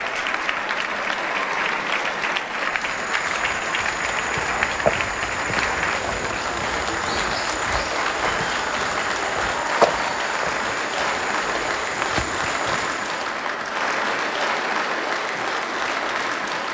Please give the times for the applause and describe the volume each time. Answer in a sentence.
You can hear the applause from 0.0 to 16.6 s, at a steady volume.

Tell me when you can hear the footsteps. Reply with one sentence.
The footsteps can be heard from 2.6 to 13.3 s.